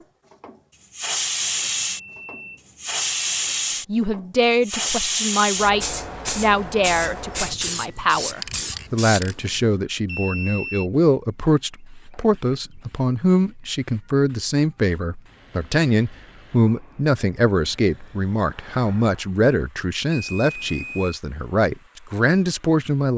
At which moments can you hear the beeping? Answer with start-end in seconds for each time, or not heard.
1.4-3.5, 10.1-10.9, 20.1-21.2.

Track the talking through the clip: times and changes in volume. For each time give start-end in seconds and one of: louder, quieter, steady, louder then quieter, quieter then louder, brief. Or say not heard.
3.9-23.1 steady.